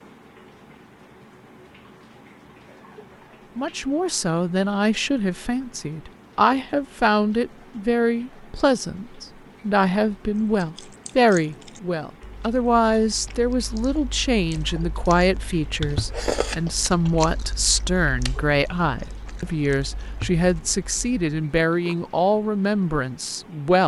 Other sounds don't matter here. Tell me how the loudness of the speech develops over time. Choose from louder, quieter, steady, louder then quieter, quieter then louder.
steady.